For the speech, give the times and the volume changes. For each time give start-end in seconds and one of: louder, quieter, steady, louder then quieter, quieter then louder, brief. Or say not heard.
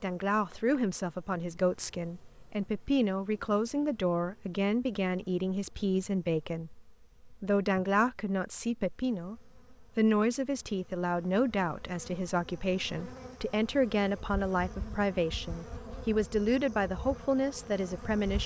0.0-18.4 steady.